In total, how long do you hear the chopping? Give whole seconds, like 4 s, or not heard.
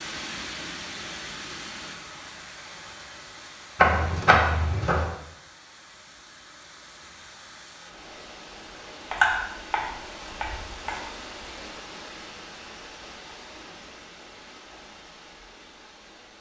3 s.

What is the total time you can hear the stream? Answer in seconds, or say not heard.
16 s.